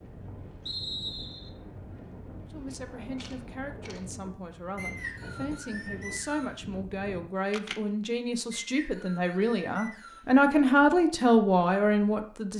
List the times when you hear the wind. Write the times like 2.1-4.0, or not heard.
0.0-7.2.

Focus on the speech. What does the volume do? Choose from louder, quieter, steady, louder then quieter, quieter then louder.
louder.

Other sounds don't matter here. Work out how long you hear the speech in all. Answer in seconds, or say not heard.
10 s.